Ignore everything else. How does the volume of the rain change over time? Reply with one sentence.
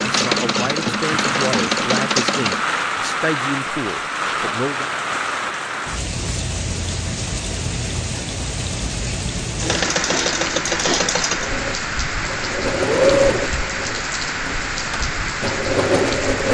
The loudness of the rain stays about the same.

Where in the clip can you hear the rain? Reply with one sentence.
You can hear the rain from 0.0 to 16.4 s.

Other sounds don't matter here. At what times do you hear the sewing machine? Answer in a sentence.
You can hear the sewing machine from 0.0 to 2.6 s and from 9.6 to 16.4 s.